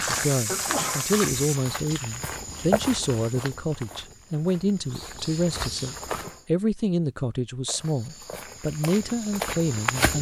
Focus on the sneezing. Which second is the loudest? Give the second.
1 s.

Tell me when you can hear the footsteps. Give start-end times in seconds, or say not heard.
0.0-6.4, 7.7-10.1.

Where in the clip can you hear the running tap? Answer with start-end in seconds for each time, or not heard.
0.0-1.6.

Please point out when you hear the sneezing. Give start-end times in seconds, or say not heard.
0.5-1.1, 5.8-6.5.